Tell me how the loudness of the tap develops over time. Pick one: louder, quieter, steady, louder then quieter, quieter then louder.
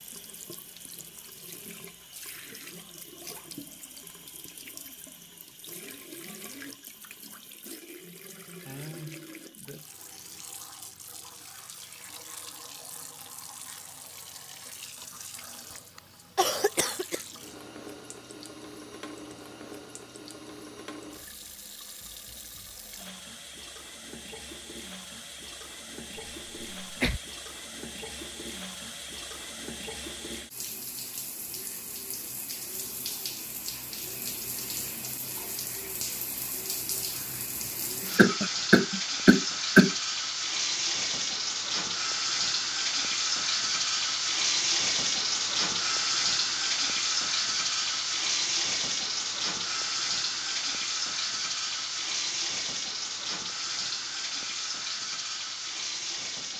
louder.